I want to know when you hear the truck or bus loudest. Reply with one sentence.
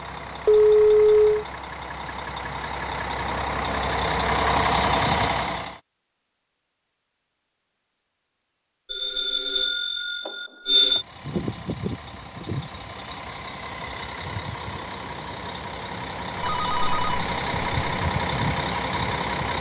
The volume of the truck or bus peaks at 5 seconds.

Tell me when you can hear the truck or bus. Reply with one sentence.
The truck or bus can be heard from 0.0 to 5.8 s and from 10.8 to 19.5 s.